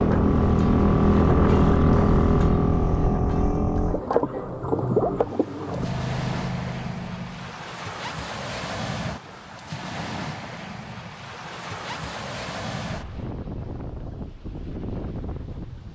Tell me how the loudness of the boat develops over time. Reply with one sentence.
The volume of the boat goes down.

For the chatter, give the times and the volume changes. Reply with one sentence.
The chatter can't be heard in this clip.